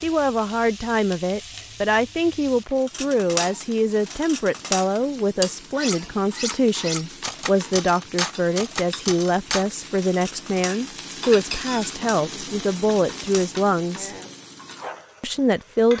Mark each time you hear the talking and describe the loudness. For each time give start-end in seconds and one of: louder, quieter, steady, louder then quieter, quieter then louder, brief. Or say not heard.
0.0-14.1 steady
15.2-15.9 brief.